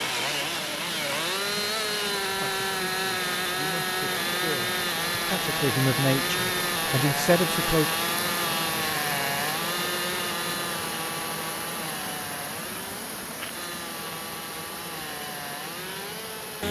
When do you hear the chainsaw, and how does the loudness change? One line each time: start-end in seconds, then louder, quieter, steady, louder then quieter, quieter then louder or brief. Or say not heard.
0.0-16.6 quieter.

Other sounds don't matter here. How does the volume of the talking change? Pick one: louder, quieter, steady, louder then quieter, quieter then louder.
louder.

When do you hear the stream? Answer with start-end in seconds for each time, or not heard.
0.0-16.6.